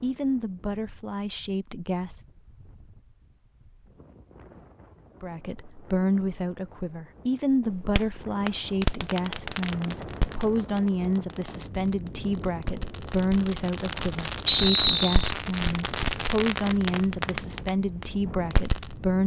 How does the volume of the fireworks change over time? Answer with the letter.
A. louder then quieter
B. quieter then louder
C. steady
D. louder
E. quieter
B.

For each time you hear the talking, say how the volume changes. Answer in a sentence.
The talking can be heard briefly from 0.0 to 2.2 s; and from 5.2 to 19.2 s, at a steady volume.